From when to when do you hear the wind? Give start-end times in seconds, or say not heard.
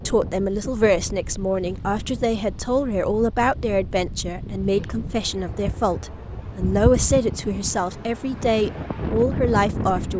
0.0-10.1.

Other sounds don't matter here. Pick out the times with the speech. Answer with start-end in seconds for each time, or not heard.
0.1-10.1.